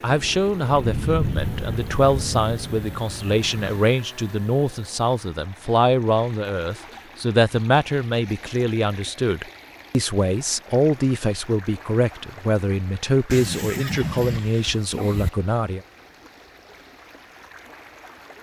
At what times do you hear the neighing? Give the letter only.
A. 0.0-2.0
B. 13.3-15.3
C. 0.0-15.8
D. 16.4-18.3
B.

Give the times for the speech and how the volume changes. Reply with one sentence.
You can hear the speech from 0.0 to 15.8 s, at a steady volume.